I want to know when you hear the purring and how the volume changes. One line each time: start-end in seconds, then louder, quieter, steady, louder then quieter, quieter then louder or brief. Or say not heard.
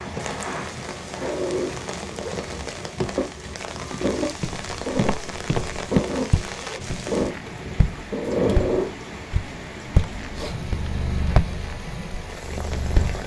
0.0-13.2 louder then quieter.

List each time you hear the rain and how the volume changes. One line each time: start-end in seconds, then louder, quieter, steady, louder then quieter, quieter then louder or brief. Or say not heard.
0.0-13.2 steady.